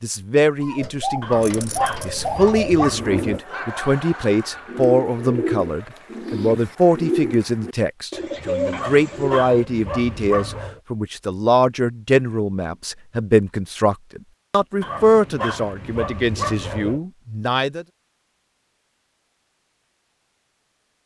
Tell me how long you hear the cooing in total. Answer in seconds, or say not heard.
9 s.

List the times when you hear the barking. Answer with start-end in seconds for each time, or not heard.
1.2-3.4, 8.7-10.8, 14.8-17.0.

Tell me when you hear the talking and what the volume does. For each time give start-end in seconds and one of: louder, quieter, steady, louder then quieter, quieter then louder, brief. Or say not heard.
0.0-17.9 steady.